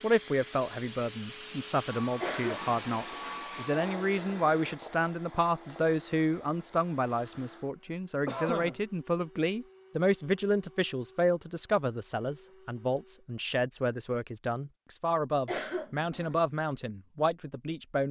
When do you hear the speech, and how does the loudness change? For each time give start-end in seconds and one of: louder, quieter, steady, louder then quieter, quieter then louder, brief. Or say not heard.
0.0-18.0 steady.